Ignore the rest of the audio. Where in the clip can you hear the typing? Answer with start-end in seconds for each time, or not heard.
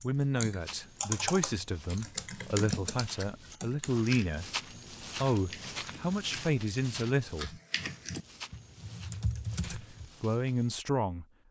0.0-10.1.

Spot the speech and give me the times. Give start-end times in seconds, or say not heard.
0.0-4.5, 5.2-7.5, 9.7-11.2.